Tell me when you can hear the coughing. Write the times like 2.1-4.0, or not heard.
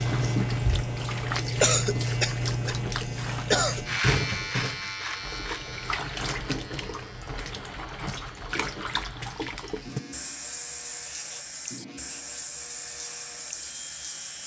1.6-3.9.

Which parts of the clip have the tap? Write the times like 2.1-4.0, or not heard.
0.0-14.4.